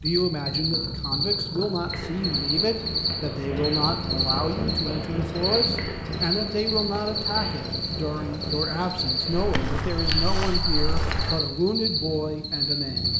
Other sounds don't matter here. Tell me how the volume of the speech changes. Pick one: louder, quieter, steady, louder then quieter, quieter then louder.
steady.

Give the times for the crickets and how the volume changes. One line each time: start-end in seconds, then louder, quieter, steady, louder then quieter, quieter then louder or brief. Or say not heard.
0.1-13.1 steady.